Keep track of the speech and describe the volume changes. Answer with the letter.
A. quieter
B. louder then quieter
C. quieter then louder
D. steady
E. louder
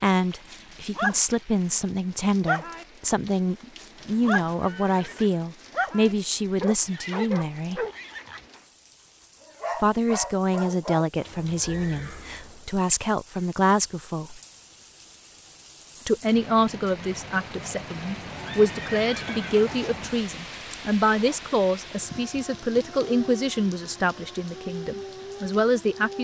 D.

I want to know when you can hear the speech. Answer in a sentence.
You can hear the speech from 0.0 to 7.8 s, from 9.8 to 14.4 s and from 16.1 to 26.1 s.